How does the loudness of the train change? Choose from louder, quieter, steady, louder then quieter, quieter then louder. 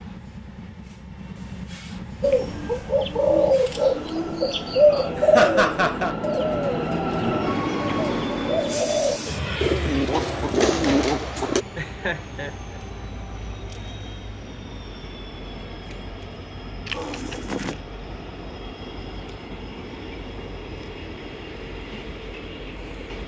louder then quieter.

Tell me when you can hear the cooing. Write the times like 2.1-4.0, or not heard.
2.2-11.7.